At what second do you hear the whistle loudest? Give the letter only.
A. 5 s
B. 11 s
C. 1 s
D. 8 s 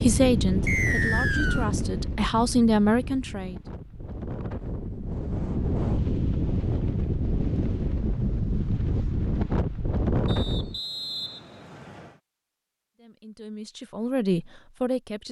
C.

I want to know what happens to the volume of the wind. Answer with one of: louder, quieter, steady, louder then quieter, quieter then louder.
quieter then louder.